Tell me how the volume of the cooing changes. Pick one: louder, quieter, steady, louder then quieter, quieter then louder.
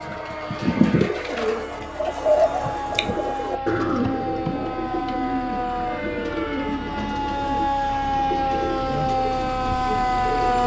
quieter.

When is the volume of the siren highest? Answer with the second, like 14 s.
10 s.